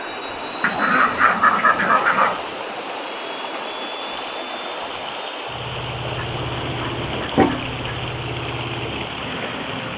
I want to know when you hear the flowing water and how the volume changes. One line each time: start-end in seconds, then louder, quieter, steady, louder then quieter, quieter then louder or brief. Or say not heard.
0.0-9.9 steady.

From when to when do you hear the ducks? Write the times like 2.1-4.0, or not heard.
0.6-2.4, 6.2-8.1.